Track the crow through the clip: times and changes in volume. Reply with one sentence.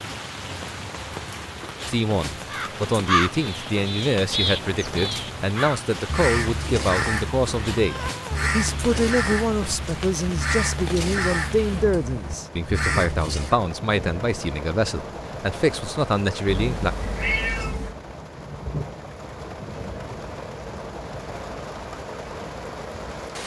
You can hear the crow from 2.5 to 13.6 s, at a steady volume.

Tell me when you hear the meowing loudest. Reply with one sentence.
The volume of the meowing peaks at 17 seconds.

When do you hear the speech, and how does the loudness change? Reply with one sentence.
The speech can be heard from 1.9 to 16.9 s, at a steady volume.